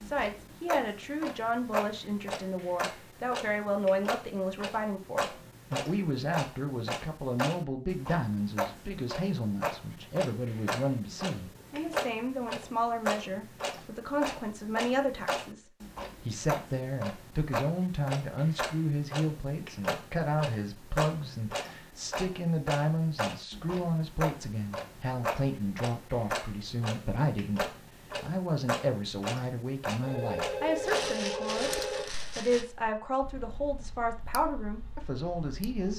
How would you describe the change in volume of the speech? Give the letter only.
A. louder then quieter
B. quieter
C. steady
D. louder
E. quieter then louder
C.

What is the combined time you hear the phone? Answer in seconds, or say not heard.
2 s.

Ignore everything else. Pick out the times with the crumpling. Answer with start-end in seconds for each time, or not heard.
30.9-32.6.